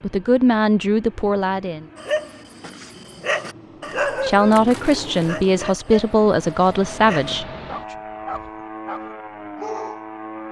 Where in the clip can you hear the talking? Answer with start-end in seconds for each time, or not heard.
0.0-1.9, 4.2-7.5.